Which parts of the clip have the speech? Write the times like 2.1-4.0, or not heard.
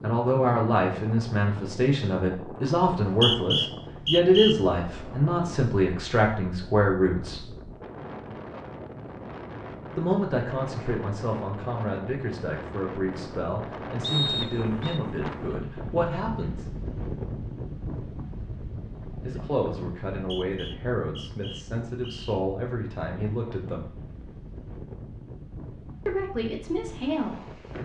0.0-7.5, 9.9-16.8, 19.2-23.9, 26.1-27.6.